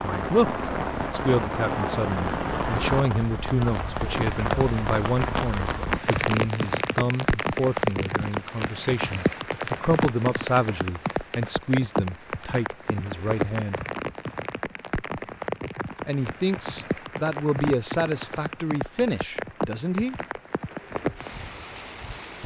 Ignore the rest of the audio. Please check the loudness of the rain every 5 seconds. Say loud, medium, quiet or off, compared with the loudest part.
loud, loud, loud, medium, medium.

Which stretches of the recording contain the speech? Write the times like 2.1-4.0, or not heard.
0.0-13.8, 16.1-20.1.